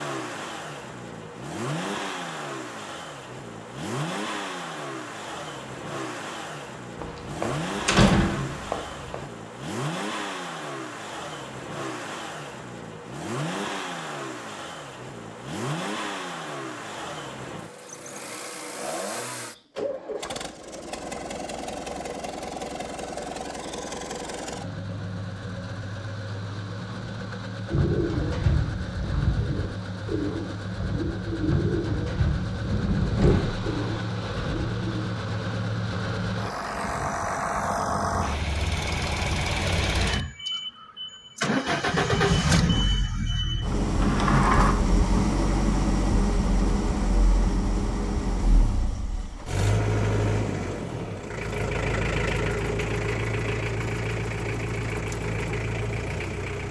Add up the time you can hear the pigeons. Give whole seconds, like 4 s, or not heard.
7 s.